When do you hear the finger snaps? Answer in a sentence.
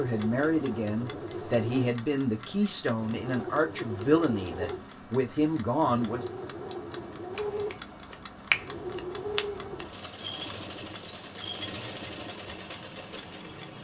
The finger snaps can be heard from 7.3 to 9.9 s.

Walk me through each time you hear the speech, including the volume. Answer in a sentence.
The speech can be heard from 0.0 to 6.2 s, at a steady volume.